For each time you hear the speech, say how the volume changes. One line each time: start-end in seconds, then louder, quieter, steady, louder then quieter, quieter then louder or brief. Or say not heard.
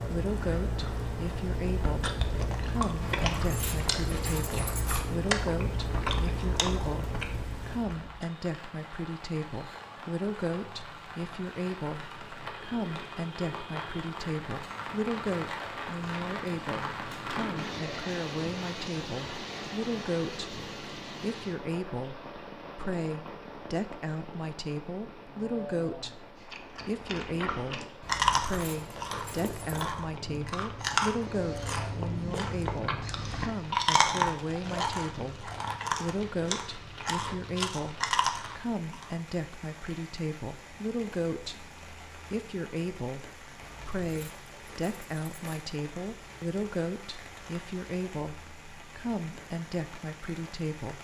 0.0-50.9 steady.